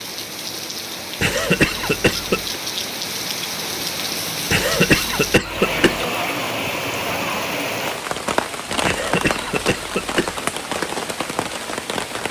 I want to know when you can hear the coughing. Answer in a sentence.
You can hear the coughing from 1.2 to 2.5 s, from 4.5 to 6.0 s and from 8.8 to 10.4 s.